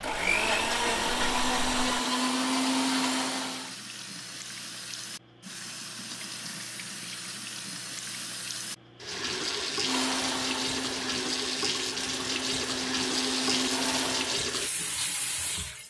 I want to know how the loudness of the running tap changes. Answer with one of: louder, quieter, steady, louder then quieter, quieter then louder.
louder.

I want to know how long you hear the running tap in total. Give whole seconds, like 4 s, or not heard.
16 s.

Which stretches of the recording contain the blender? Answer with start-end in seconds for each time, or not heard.
0.0-3.8, 9.1-14.4.